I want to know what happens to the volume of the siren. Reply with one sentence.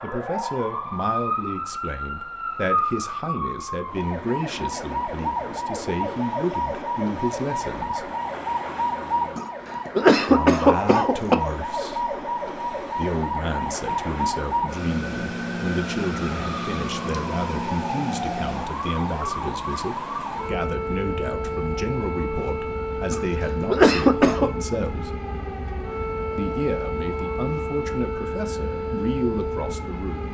The loudness of the siren stays about the same.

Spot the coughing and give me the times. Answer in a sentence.
You can hear the coughing from 9.3 to 11.3 s and from 23.1 to 24.5 s.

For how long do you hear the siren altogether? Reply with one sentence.
The siren can be heard for 30 seconds in total.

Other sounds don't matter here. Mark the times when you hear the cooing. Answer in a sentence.
You can't hear the cooing here.